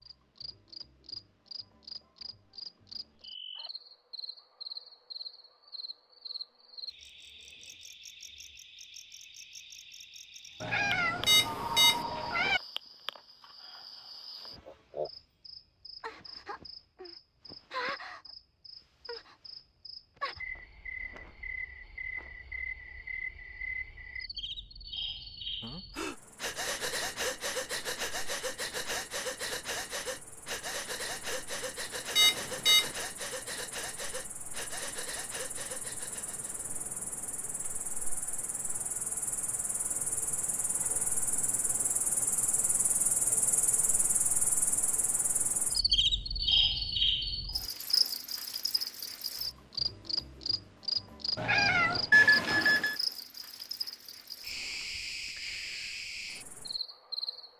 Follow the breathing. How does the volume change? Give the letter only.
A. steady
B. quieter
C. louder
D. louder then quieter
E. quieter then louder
B.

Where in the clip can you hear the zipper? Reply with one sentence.
You can't hear the zipper here.